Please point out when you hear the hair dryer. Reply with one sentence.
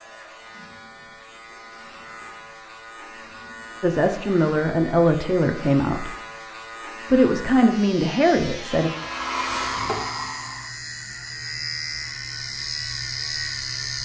The hair dryer can be heard from 8.8 to 10.8 s.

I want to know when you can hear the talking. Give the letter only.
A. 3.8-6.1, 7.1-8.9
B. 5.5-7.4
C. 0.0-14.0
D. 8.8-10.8
A.